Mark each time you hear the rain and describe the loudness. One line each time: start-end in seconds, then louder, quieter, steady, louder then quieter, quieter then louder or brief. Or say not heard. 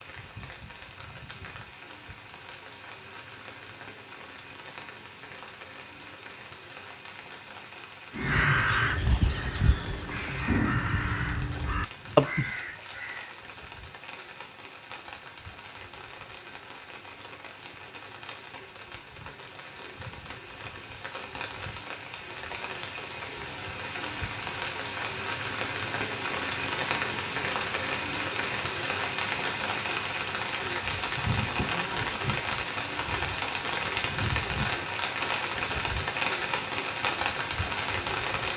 0.0-38.5 louder.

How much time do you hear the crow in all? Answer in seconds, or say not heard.
5 s.